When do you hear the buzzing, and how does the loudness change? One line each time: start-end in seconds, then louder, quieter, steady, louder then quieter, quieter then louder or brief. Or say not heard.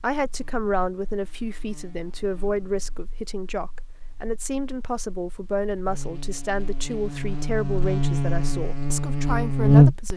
0.1-10.1 louder.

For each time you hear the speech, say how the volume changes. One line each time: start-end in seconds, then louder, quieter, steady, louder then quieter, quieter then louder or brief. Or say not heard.
0.0-10.1 steady.